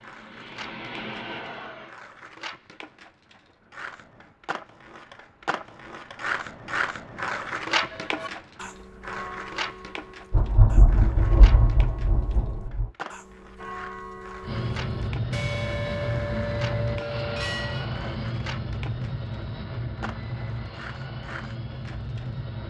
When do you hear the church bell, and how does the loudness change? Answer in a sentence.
The church bell can be heard from 7.8 to 17.9 s, getting quieter then louder.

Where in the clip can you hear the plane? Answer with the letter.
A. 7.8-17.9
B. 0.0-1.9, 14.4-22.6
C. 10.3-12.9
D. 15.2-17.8
B.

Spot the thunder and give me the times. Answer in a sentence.
The thunder can be heard from 10.3 to 12.9 s.